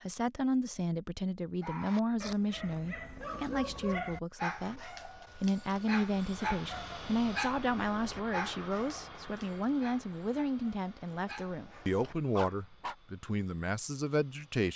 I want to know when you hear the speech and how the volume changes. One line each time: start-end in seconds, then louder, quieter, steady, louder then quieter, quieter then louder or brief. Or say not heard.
0.0-14.7 steady.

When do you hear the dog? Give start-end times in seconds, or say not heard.
1.6-12.9.